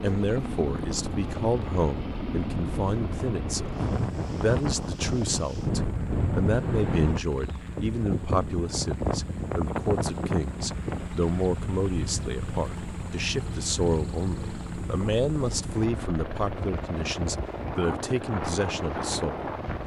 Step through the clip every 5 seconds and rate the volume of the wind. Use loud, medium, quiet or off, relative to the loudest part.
loud, loud, medium, medium.